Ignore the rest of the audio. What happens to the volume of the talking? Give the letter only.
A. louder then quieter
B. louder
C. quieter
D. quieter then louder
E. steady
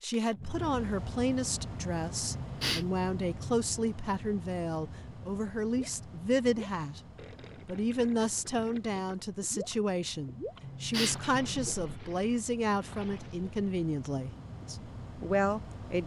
E.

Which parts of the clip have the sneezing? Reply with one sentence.
You can hear the sneezing from 2.3 to 3.6 s and from 10.6 to 11.7 s.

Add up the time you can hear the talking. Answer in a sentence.
You can hear the talking for 15 seconds altogether.